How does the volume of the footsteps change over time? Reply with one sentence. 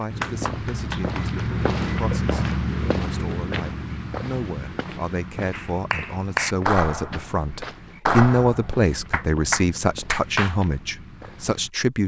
The loudness of the footsteps goes down.